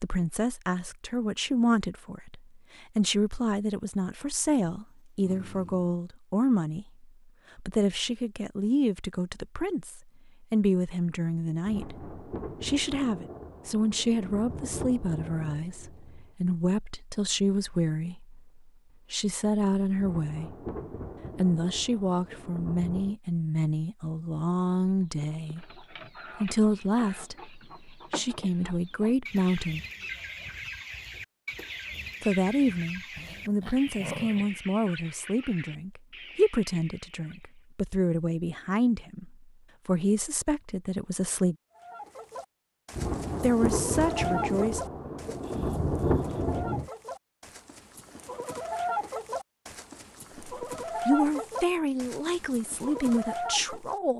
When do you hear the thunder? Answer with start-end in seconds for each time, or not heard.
11.6-16.3, 19.9-23.1, 42.9-46.9.